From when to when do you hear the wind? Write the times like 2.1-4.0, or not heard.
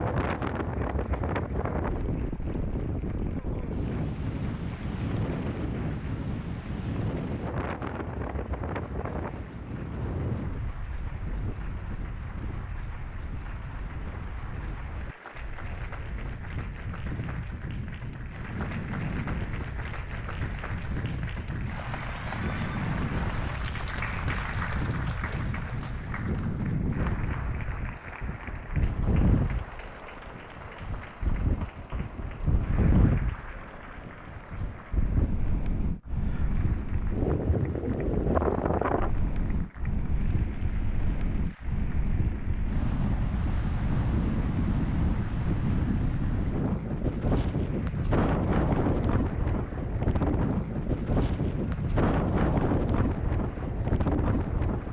0.0-54.8.